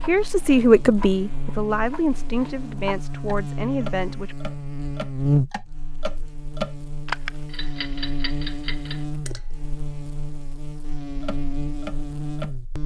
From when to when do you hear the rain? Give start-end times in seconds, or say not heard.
not heard.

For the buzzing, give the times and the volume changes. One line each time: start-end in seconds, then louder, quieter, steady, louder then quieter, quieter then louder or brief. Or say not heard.
0.0-12.8 louder then quieter.